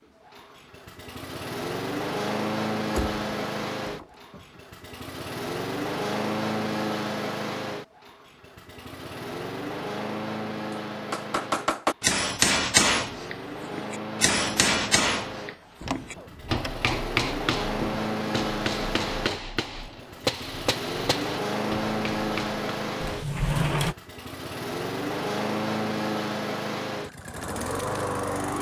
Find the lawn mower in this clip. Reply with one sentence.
You can hear the lawn mower from 0.2 to 28.5 s.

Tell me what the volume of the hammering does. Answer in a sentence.
The volume of the hammering goes down.